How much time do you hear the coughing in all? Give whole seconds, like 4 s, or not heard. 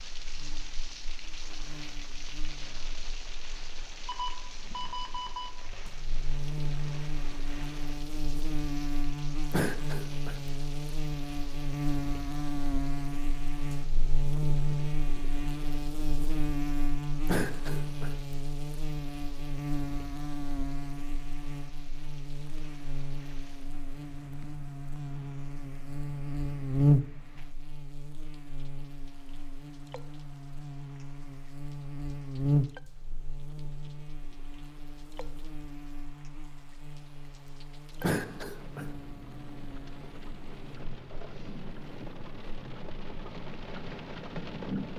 3 s.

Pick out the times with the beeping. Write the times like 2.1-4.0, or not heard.
4.0-5.5.